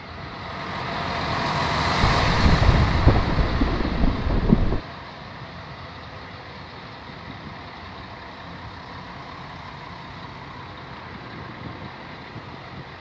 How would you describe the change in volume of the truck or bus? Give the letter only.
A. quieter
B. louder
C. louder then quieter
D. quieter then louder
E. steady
A.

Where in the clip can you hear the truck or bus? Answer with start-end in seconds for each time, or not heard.
0.0-12.9.